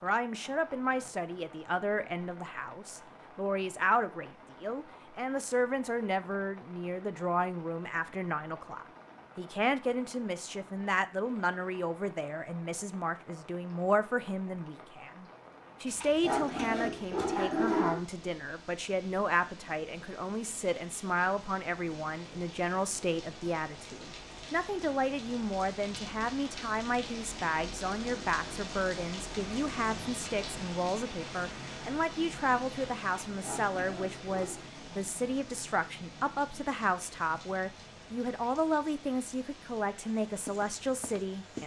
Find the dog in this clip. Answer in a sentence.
You can hear the dog from 15.8 to 18.0 s and from 33.2 to 34.6 s.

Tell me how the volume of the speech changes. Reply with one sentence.
The loudness of the speech stays about the same.